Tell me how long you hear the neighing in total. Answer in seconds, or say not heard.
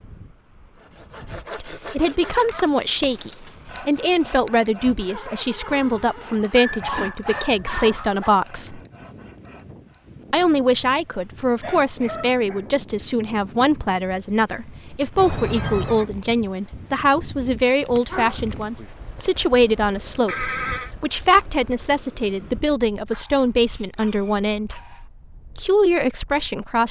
4 s.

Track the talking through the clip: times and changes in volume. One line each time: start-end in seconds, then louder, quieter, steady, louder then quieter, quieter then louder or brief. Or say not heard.
1.5-8.8 steady
10.3-24.9 steady
25.6-26.8 brief.